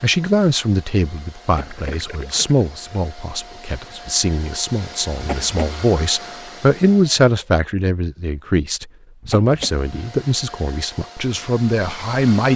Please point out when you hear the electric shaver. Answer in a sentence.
The electric shaver can't be heard in this clip.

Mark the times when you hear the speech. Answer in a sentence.
You can hear the speech from 0.0 to 12.5 s.